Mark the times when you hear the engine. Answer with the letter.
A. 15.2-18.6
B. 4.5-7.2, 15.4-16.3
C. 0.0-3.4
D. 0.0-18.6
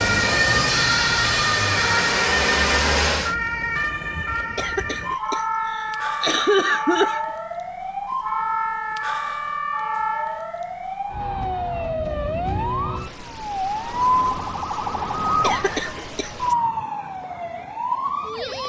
C.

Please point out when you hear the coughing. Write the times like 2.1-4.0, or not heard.
4.5-7.2, 15.4-16.3.